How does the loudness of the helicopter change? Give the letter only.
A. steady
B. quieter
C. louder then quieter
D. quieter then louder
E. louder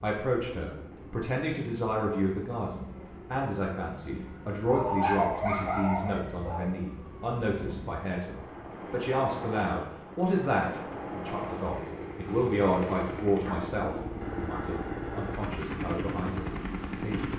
E.